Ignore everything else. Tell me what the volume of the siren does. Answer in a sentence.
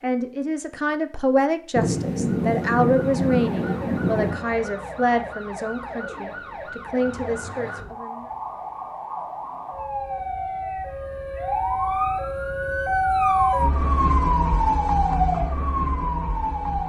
The loudness of the siren goes up.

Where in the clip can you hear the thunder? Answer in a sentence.
The thunder can be heard from 1.8 to 4.4 s.